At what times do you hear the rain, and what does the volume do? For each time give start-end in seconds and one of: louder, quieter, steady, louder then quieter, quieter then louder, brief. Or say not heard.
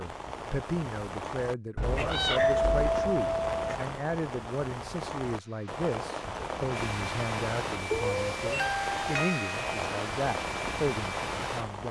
0.0-11.8 steady.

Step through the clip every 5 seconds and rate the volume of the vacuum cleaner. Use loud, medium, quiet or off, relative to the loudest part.
off, loud, loud.